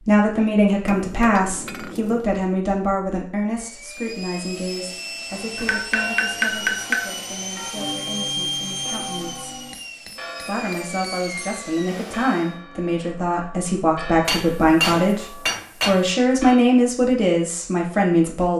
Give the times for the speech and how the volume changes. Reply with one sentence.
You can hear the speech from 0.0 to 9.6 s, getting quieter; and from 10.4 to 18.5 s, getting louder.